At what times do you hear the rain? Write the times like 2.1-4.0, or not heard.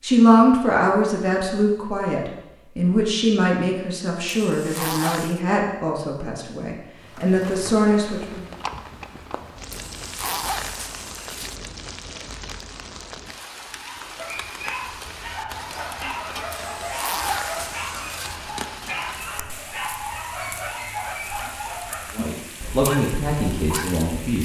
7.0-24.4.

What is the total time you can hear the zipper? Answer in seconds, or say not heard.
5 s.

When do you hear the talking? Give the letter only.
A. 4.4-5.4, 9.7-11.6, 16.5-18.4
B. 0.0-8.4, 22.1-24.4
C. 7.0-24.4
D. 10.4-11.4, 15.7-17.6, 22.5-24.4
B.